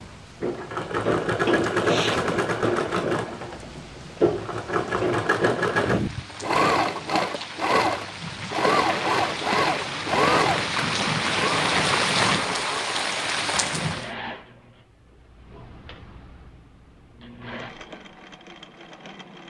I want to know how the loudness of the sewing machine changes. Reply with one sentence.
The volume of the sewing machine goes down.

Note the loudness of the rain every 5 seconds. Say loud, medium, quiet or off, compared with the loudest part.
quiet, medium, loud, off.